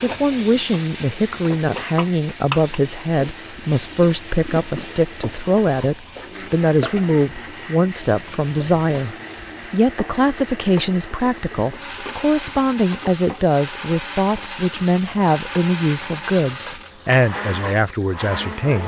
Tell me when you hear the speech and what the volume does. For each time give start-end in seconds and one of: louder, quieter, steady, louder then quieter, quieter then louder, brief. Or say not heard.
0.0-18.8 steady.